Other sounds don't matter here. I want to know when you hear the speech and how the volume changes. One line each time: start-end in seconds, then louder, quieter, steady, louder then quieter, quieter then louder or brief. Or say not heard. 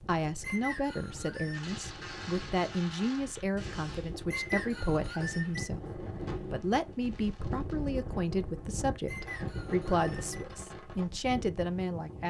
0.1-12.2 steady.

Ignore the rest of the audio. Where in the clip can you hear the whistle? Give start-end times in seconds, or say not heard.
0.4-1.7, 4.3-5.7, 9.1-10.4.